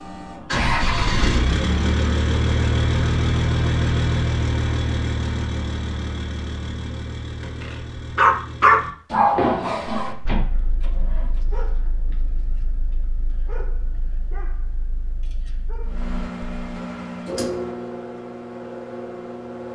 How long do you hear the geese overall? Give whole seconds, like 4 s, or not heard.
not heard.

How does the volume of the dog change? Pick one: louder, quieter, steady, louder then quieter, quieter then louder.
quieter.